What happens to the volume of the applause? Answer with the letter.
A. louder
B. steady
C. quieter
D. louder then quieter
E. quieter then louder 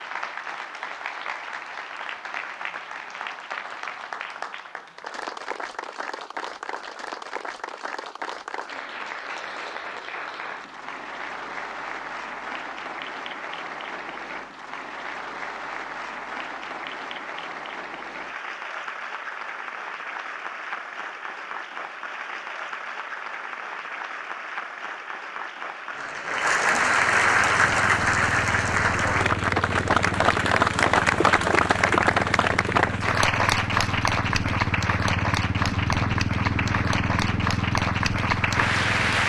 A.